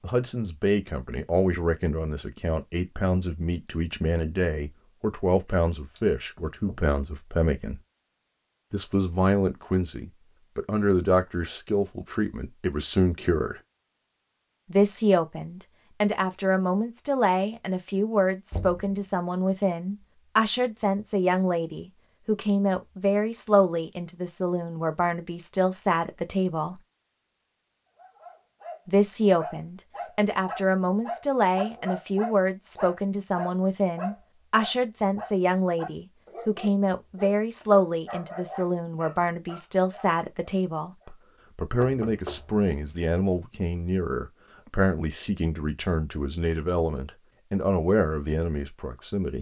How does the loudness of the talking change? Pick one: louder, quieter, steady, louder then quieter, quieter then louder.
steady.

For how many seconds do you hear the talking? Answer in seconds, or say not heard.
45 s.